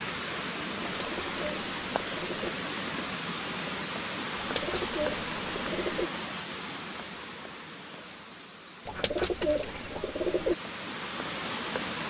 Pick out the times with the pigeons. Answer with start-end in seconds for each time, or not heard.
0.9-2.5, 4.3-6.1, 8.8-10.6.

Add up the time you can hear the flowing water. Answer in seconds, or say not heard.
12 s.